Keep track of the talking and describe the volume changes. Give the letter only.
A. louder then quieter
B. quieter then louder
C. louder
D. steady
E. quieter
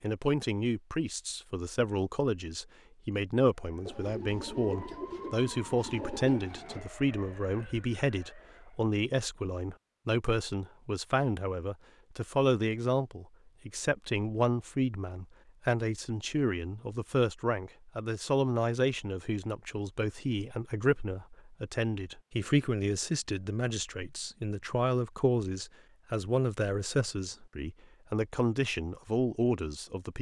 D.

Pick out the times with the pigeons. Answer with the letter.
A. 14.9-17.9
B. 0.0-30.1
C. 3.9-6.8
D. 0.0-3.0
C.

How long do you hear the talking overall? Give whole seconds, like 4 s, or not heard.
30 s.